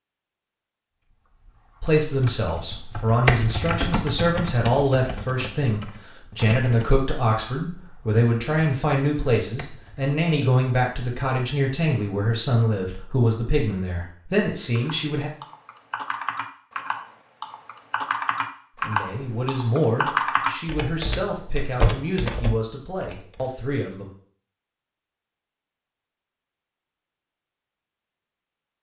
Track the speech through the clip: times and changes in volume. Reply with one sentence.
You can hear the speech from 1.8 to 15.3 s, at a steady volume; and from 18.8 to 24.1 s, getting quieter.